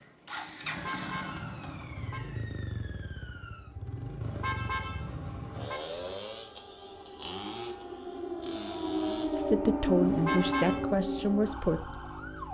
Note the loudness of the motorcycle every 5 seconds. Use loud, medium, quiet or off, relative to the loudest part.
loud, loud, medium.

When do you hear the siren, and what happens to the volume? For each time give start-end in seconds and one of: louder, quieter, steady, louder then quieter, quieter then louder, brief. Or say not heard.
0.0-12.4 louder.